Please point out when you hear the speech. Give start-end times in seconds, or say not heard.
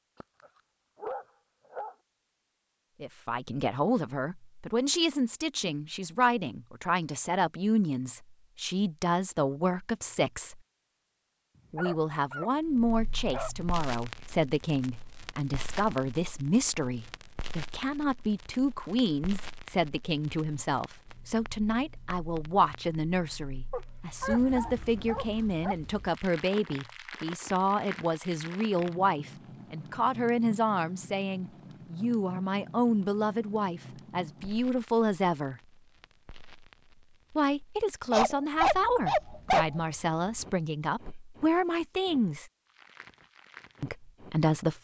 3.0-10.6, 11.7-35.6, 37.3-42.5, 43.8-44.7.